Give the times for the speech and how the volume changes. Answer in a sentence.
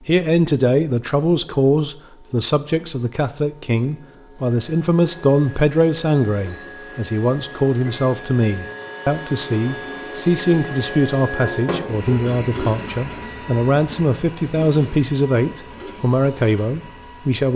You can hear the speech from 0.1 to 17.5 s, at a steady volume.